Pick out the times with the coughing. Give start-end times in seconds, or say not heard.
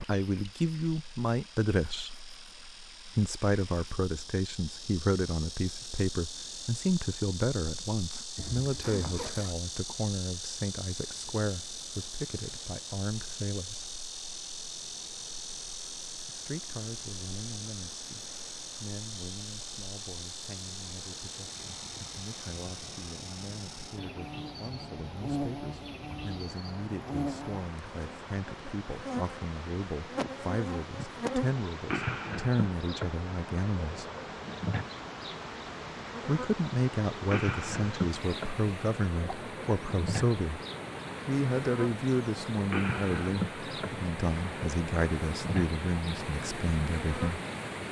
not heard.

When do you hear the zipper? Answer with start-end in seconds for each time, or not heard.
8.3-9.6.